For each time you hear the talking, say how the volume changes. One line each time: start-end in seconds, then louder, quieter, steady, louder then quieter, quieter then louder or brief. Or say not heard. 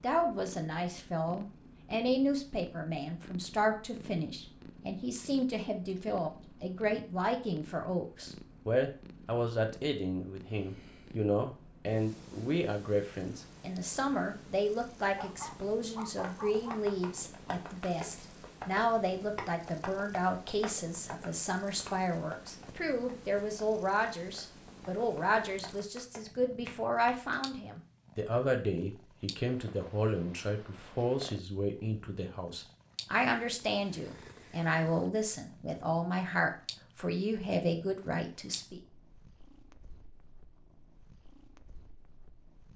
0.0-38.8 steady.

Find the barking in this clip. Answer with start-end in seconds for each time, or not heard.
15.2-16.8.